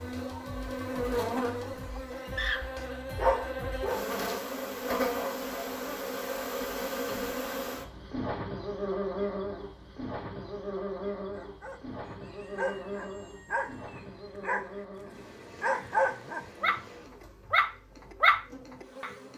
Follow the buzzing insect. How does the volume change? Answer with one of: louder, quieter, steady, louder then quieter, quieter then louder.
quieter.